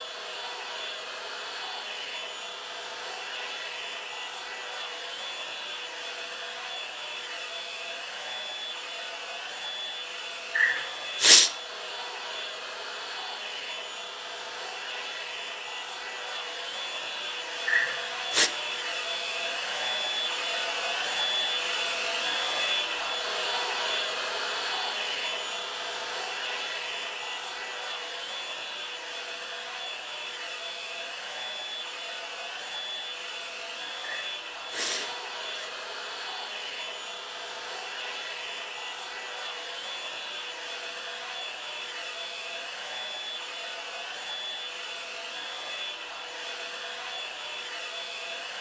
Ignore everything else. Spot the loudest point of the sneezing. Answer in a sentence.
The volume of the sneezing peaks at 11 seconds.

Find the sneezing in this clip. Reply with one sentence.
The sneezing can be heard from 10.6 to 11.5 s, from 17.6 to 18.5 s and from 34.0 to 35.7 s.